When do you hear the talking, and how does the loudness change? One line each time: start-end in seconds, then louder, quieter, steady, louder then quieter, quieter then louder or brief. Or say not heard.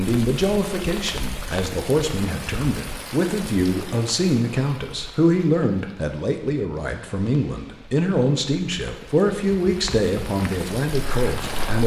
0.0-11.8 steady.